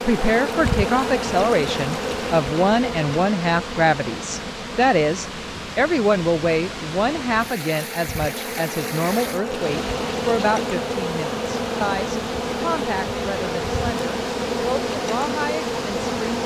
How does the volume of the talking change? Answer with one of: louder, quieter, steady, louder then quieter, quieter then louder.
quieter.